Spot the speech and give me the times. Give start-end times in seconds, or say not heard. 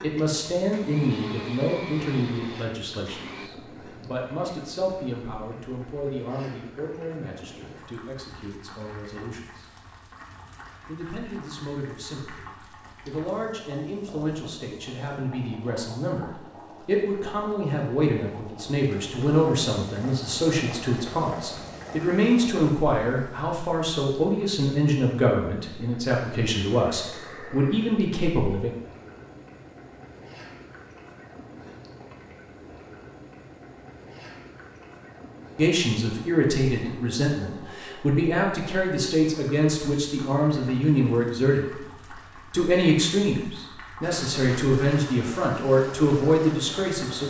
0.0-9.7, 10.8-28.7, 35.5-41.9, 42.5-47.2.